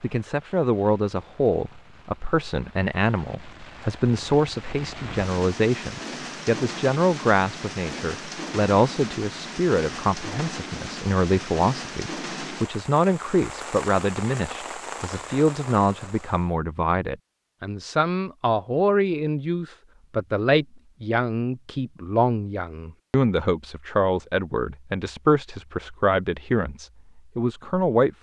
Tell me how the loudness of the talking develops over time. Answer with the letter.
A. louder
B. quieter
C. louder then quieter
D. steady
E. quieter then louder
D.